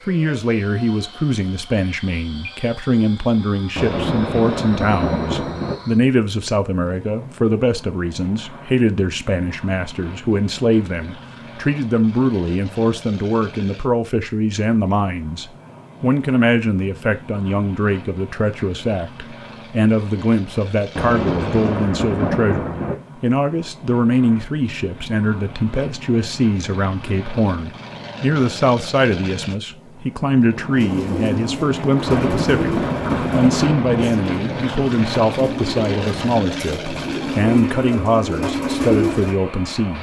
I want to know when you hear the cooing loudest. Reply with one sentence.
The volume of the cooing peaks at 39 seconds.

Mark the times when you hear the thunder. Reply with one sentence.
The thunder can be heard from 3.8 to 5.8 s, from 20.9 to 22.9 s and from 32.0 to 34.1 s.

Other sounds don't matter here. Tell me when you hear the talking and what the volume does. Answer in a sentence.
The talking can be heard from 0.1 to 39.9 s, at a steady volume.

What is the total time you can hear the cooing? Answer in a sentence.
You can hear the cooing for 9 seconds altogether.